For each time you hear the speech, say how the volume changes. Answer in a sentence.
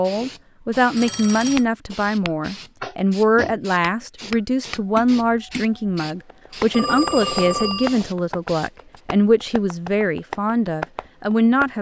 You can hear the speech from 0.0 to 11.7 s, at a steady volume.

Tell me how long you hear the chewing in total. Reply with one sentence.
The chewing can't be heard in this clip.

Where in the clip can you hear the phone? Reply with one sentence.
The phone can be heard from 0.9 to 1.6 s and from 6.7 to 8.0 s.